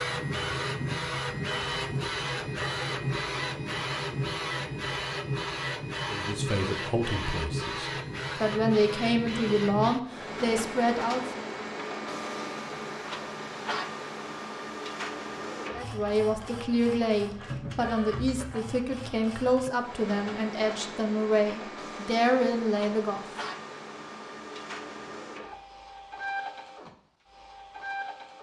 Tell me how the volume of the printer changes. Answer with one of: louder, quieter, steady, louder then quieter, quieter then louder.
quieter.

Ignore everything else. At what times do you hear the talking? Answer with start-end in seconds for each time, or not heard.
6.0-11.4, 15.7-23.2.